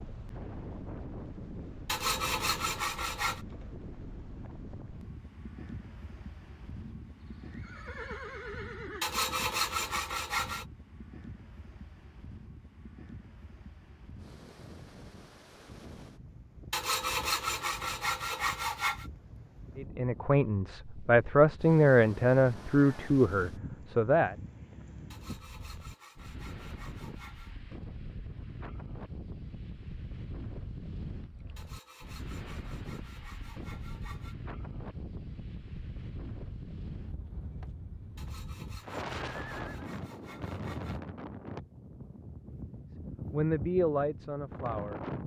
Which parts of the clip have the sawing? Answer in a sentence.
You can hear the sawing from 1.9 to 3.4 s, from 9.0 to 10.7 s, from 16.7 to 19.1 s, from 25.1 to 27.6 s, from 31.6 to 34.4 s and from 38.1 to 41.0 s.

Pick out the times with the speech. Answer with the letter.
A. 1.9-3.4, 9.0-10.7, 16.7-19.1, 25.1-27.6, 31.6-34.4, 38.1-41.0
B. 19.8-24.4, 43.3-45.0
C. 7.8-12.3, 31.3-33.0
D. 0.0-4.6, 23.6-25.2
B.